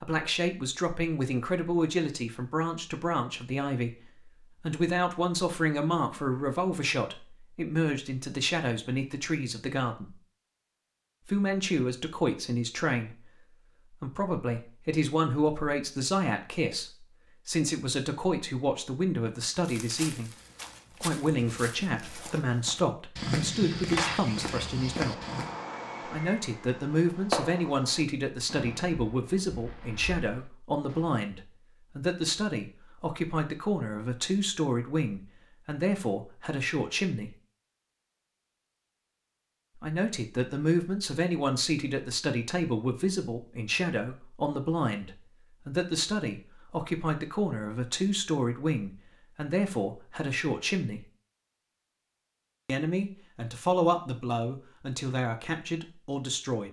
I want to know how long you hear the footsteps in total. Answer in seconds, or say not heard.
6 s.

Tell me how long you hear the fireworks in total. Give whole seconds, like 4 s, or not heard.
7 s.